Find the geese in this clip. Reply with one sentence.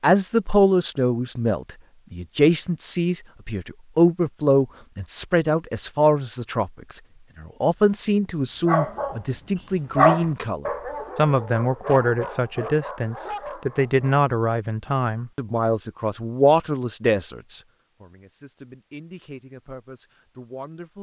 You can't hear the geese here.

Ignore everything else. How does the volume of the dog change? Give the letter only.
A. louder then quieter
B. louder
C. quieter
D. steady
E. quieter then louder
A.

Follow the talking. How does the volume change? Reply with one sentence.
The loudness of the talking goes down.